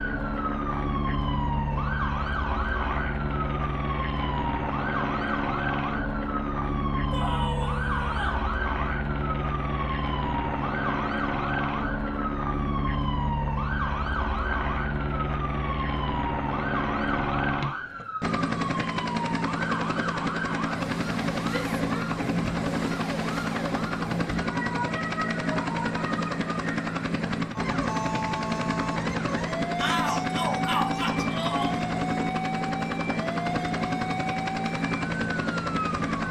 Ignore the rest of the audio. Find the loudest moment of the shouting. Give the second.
30 s.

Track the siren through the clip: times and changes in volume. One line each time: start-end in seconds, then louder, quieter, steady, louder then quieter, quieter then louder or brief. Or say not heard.
0.0-36.2 steady.